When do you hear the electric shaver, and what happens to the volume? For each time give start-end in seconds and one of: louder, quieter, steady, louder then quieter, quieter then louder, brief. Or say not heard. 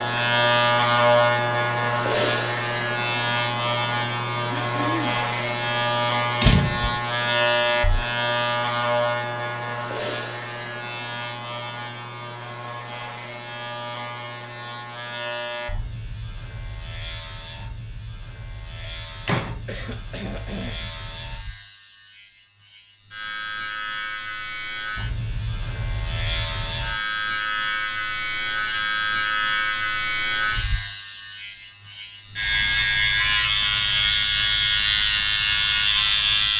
0.0-36.5 quieter then louder.